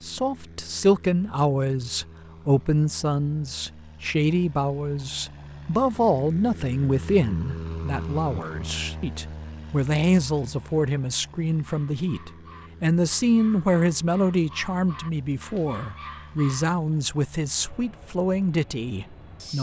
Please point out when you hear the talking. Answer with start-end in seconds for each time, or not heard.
0.0-19.5.